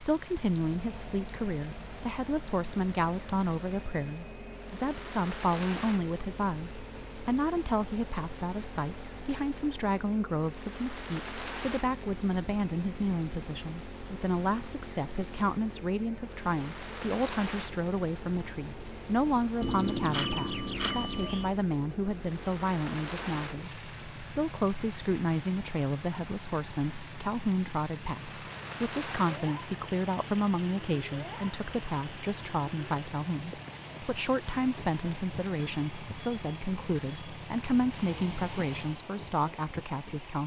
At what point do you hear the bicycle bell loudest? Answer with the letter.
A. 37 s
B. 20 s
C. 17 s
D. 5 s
B.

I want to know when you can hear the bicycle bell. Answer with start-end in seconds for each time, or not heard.
3.5-4.5, 19.6-21.5, 35.6-37.4.